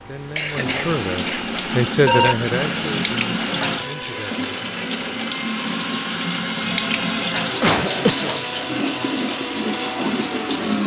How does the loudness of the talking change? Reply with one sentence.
The loudness of the talking goes up, then down.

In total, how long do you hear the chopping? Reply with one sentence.
The chopping can't be heard in this clip.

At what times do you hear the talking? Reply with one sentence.
You can hear the talking from 0.1 to 4.5 s.